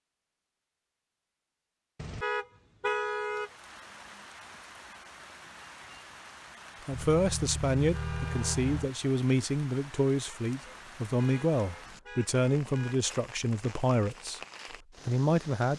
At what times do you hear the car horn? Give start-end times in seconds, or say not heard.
1.9-3.5, 7.0-8.9, 10.7-13.1.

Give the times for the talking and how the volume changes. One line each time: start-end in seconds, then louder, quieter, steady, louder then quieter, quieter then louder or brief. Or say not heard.
6.8-14.4 steady
15.1-15.7 brief.